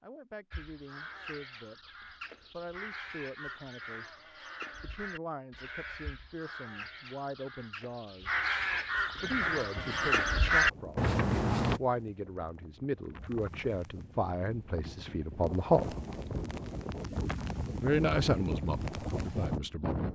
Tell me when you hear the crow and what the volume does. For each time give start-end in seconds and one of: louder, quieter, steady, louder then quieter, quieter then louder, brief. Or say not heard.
0.5-11.8 louder.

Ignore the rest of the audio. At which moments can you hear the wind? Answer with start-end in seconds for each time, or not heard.
9.1-20.1.